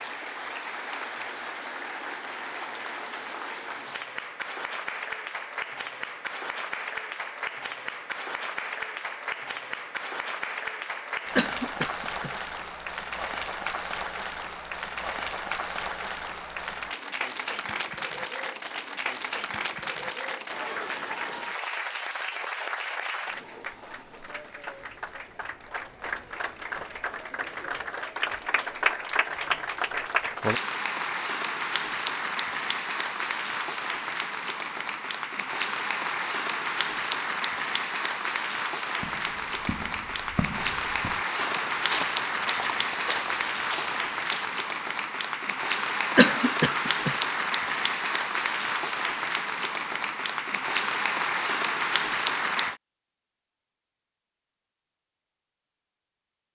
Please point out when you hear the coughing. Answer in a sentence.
You can hear the coughing from 11.3 to 12.3 s and from 46.1 to 47.1 s.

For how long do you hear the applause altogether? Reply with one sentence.
You can hear the applause for 53 seconds altogether.